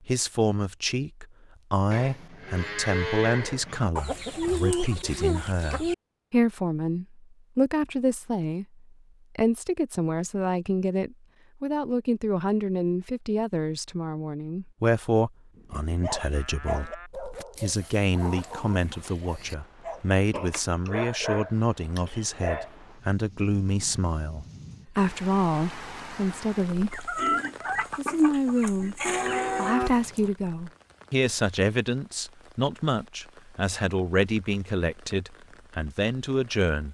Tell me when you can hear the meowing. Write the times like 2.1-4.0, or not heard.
not heard.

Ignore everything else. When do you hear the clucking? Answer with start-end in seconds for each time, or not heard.
4.0-6.0, 17.6-19.6, 26.9-29.8.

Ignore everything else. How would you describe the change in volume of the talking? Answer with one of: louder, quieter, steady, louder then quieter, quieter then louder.
steady.